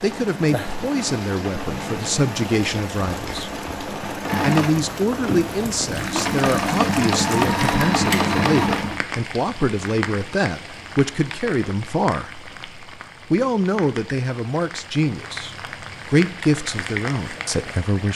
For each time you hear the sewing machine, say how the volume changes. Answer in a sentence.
You can hear the sewing machine from 0.0 to 9.1 s, getting louder.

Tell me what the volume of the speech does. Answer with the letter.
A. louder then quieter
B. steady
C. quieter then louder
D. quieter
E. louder
B.